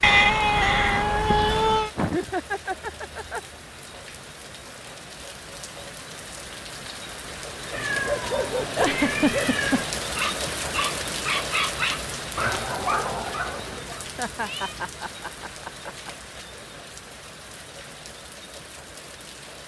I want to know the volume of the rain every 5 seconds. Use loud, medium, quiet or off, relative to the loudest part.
medium, loud, loud, medium.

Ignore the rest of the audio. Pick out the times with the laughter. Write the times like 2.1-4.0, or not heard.
1.9-3.4, 8.8-9.9, 14.2-16.1.